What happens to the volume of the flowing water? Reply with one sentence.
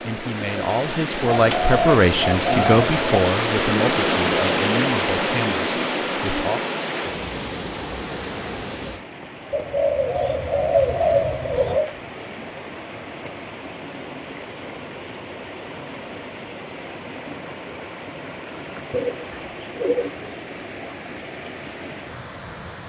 The loudness of the flowing water goes down.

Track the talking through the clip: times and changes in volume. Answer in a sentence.
You can hear the talking from 0.0 to 6.6 s, getting quieter.